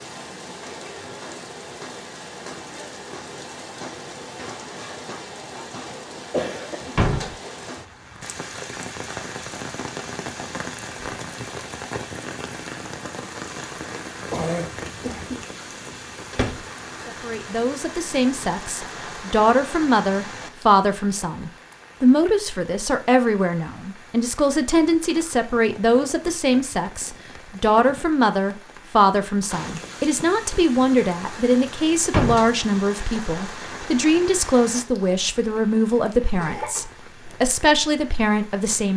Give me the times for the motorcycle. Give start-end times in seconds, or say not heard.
not heard.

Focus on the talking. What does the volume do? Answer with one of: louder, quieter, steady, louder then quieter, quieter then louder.
steady.